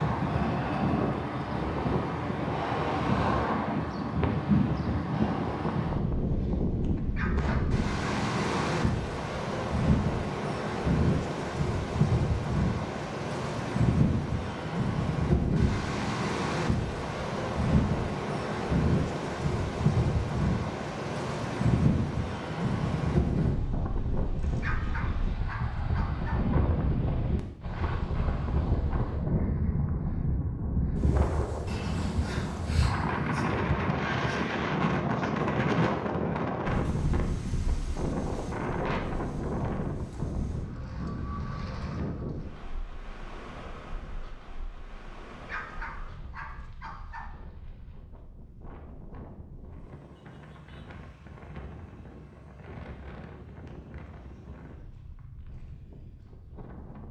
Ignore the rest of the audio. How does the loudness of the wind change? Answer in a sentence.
The loudness of the wind goes down.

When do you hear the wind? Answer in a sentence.
The wind can be heard from 0.0 to 57.0 s.